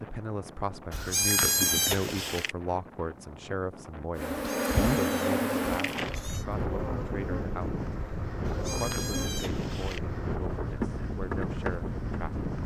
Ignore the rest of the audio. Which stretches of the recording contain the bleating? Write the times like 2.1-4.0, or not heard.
0.9-2.5, 4.5-6.5, 8.4-10.0.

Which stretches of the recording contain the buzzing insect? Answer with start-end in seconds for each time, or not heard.
4.2-12.6.